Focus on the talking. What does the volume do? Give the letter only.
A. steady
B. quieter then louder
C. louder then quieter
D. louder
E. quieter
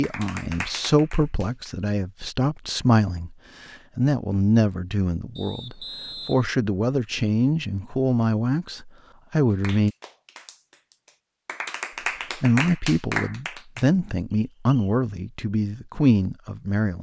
A.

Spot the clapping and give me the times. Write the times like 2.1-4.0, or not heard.
0.0-1.8, 9.5-13.8.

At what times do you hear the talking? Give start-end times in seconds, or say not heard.
0.0-9.9, 12.3-16.9.